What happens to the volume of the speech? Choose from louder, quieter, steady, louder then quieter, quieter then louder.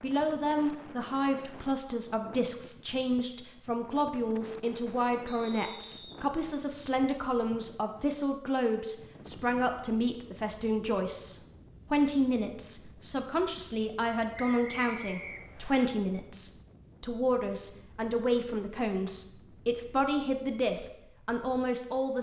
steady.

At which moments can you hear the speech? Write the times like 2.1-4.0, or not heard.
0.0-22.1.